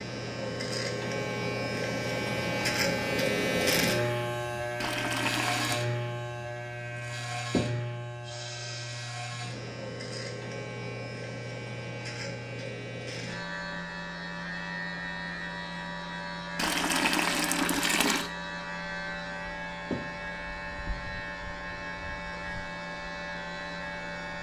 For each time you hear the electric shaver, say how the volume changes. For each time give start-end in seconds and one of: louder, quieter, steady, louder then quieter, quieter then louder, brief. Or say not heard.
0.0-24.3 quieter.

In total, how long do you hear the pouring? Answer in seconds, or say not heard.
3 s.